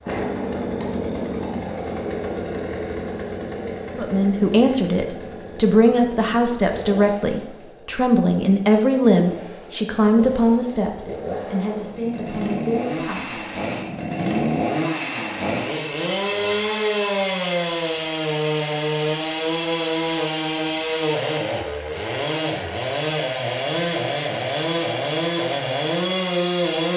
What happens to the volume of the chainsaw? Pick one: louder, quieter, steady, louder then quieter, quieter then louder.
quieter then louder.